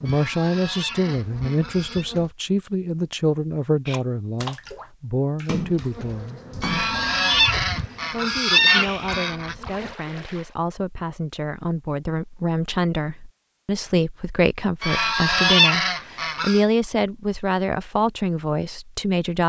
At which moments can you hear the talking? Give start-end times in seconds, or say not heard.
0.0-6.4, 8.1-19.4.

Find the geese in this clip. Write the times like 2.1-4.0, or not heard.
0.1-2.0, 6.6-9.6, 14.8-16.6.